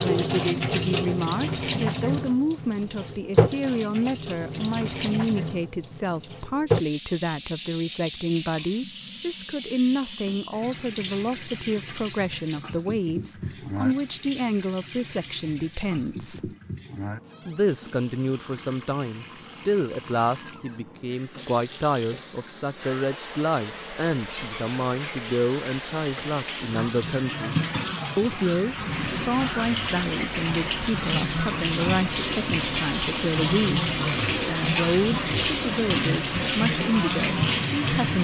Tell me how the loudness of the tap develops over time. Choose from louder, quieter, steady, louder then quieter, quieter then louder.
quieter then louder.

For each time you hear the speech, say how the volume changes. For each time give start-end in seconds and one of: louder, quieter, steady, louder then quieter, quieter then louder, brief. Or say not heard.
0.0-16.5 steady
17.4-27.6 steady
28.1-38.1 steady.